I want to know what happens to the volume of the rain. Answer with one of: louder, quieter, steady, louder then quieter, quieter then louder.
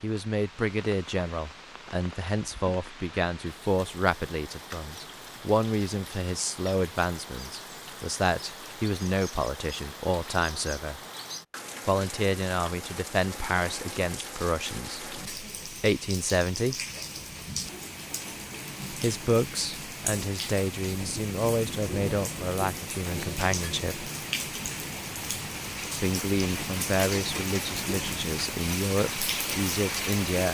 louder.